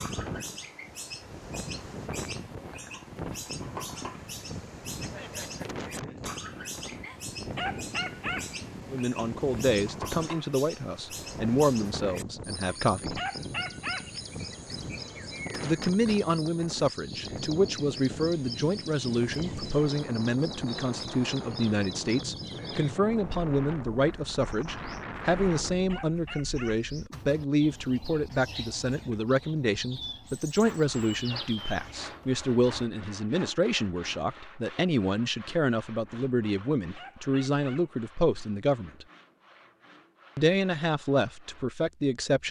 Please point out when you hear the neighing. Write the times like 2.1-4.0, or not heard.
5.0-6.3.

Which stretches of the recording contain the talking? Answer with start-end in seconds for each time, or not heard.
8.9-13.2, 15.6-39.0, 40.4-42.4.